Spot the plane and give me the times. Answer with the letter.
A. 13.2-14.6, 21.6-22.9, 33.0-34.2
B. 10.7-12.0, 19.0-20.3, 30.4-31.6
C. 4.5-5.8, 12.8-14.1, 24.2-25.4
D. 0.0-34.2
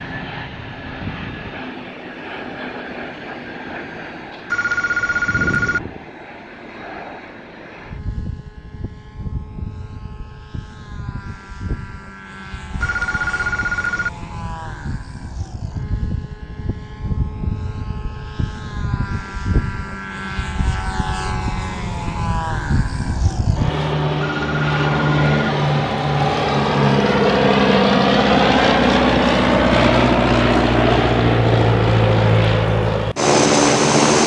D.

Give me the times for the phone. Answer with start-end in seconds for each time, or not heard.
4.5-5.8, 12.8-14.1, 24.2-25.4.